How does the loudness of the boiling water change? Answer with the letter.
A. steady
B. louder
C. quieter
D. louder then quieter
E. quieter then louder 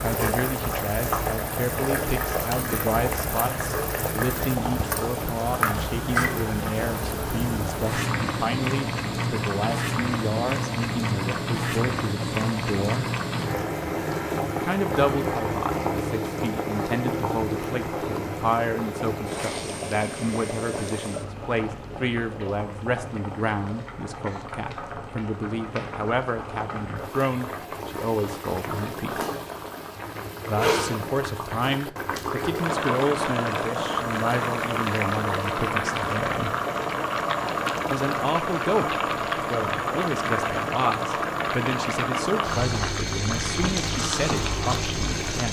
E.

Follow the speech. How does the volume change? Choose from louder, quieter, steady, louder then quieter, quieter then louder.
steady.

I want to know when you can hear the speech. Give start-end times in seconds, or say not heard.
0.0-13.1, 14.6-29.2, 30.4-36.5, 37.9-45.4.